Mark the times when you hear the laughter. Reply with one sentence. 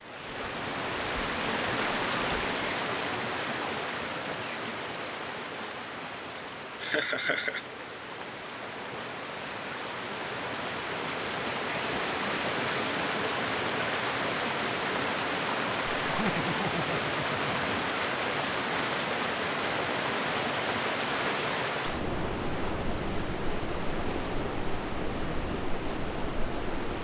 You can hear the laughter from 6.8 to 7.7 s and from 16.1 to 17.8 s.